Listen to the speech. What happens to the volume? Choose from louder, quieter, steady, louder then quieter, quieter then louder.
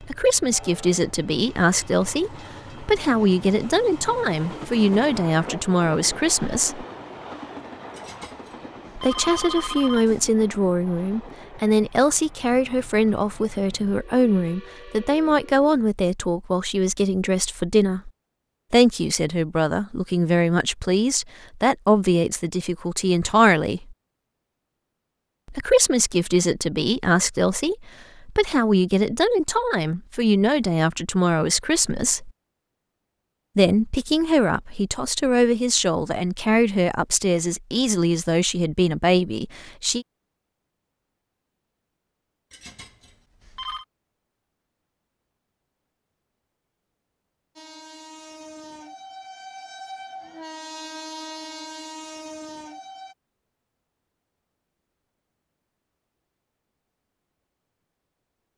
steady.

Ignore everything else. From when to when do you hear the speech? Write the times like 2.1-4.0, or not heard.
0.0-6.8, 8.9-18.1, 18.7-23.9, 25.5-32.3, 33.5-40.0.